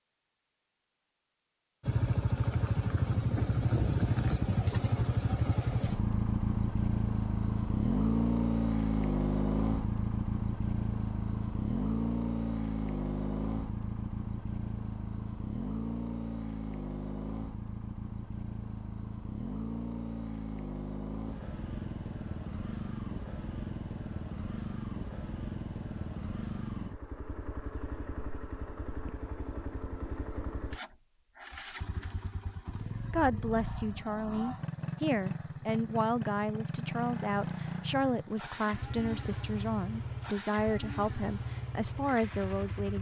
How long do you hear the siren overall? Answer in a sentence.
You can't hear the siren here.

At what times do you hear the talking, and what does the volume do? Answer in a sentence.
The talking can be heard from 33.1 to 42.9 s, at a steady volume.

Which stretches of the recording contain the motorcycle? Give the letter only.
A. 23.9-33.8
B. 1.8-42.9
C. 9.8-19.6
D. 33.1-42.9
B.